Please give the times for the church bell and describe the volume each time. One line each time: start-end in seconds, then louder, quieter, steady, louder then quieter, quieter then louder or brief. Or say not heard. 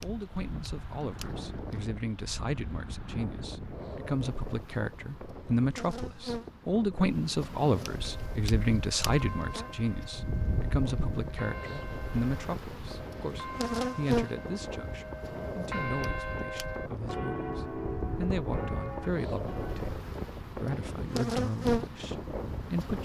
8.0-19.9 louder.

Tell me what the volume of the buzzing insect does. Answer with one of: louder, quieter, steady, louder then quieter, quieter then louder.
louder.